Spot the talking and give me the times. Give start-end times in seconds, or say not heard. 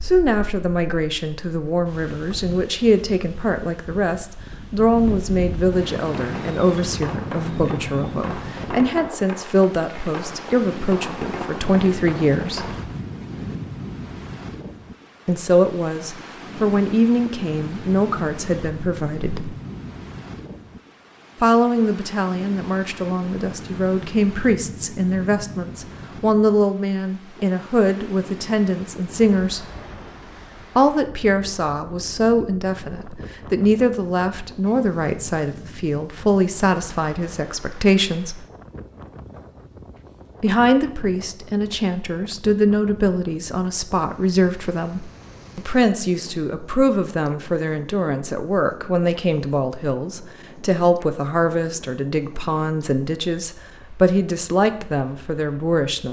0.0-12.8, 15.2-19.6, 21.4-29.6, 30.8-38.5, 40.4-56.0.